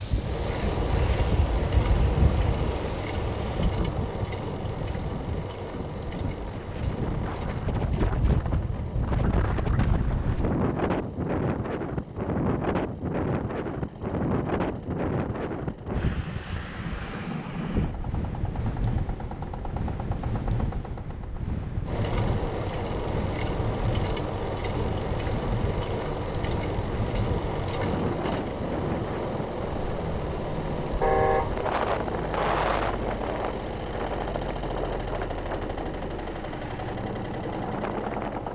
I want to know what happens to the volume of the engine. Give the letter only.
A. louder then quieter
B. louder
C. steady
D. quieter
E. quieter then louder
E.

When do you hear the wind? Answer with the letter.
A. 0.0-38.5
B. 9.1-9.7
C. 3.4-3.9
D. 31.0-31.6
A.